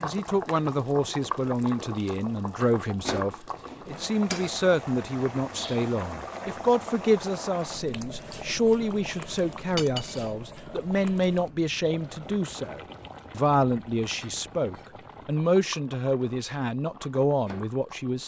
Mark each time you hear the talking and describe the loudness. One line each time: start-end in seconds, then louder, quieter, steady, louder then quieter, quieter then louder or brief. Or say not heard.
0.0-18.2 steady.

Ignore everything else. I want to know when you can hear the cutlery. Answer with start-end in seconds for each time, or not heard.
9.8-10.3.